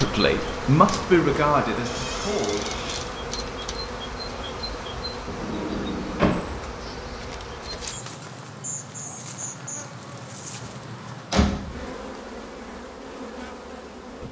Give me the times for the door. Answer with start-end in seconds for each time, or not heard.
1.9-3.0, 5.2-6.4, 10.7-11.9.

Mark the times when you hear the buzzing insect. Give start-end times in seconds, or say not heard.
0.0-14.2.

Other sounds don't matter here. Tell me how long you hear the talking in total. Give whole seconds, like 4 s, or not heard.
3 s.